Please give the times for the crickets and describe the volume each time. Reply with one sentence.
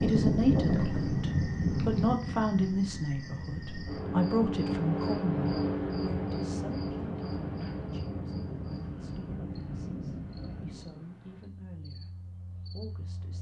You can hear the crickets from 0.0 to 13.3 s, getting louder then quieter.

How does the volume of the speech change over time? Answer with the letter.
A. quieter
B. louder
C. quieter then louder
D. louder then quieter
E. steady
A.